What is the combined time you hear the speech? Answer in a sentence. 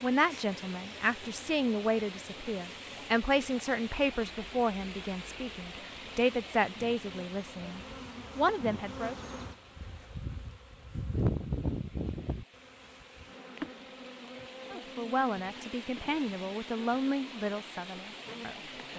You can hear the speech for 13 seconds altogether.